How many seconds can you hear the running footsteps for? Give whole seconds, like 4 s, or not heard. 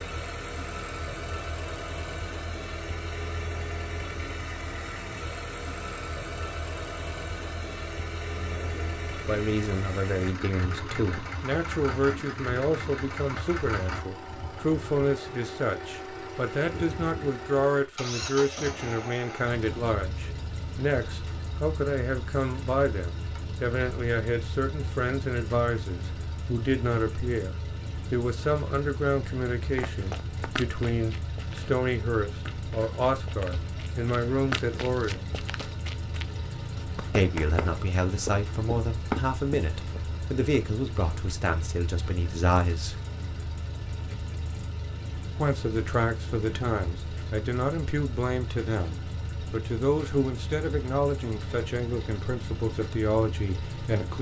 10 s.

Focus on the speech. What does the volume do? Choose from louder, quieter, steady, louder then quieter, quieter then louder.
steady.